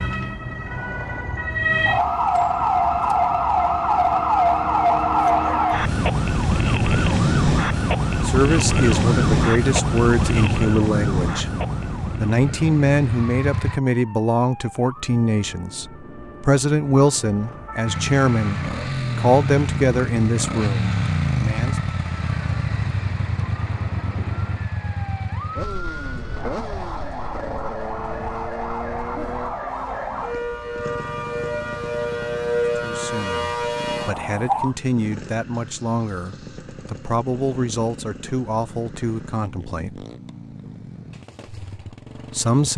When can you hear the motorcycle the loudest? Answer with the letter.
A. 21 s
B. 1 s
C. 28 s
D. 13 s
A.